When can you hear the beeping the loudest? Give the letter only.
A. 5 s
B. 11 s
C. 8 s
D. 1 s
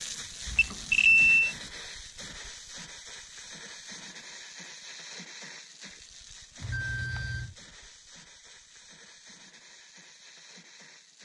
D.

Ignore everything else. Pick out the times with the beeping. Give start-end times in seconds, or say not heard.
0.5-1.6, 6.6-7.5.